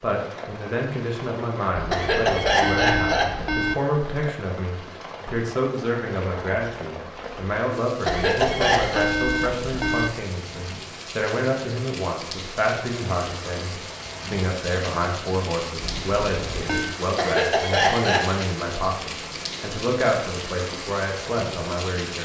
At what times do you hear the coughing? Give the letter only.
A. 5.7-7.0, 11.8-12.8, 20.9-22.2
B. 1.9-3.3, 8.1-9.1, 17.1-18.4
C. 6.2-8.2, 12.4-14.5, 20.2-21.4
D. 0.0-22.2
B.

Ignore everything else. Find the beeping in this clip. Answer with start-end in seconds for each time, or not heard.
1.8-3.8, 8.1-10.1, 15.8-16.9.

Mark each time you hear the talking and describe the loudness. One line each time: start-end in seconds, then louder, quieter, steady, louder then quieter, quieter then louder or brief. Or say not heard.
0.0-22.2 steady.